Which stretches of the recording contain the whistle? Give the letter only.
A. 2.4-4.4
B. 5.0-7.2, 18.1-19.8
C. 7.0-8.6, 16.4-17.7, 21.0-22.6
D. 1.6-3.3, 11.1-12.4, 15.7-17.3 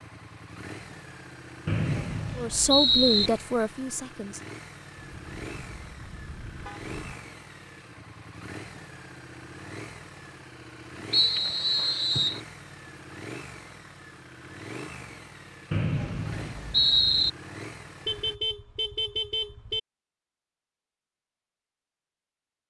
D.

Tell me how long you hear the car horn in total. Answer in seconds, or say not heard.
4 s.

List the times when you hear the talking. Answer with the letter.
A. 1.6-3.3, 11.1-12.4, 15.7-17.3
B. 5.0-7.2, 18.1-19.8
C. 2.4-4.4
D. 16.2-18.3
C.